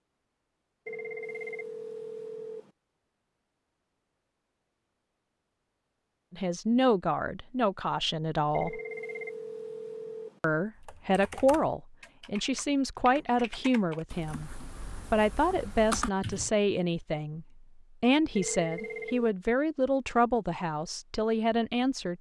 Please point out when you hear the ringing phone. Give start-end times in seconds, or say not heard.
0.8-2.7, 8.5-10.4, 18.4-19.4.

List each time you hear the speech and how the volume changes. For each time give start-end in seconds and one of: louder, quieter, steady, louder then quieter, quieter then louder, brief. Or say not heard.
6.3-8.8 brief
10.4-22.1 steady.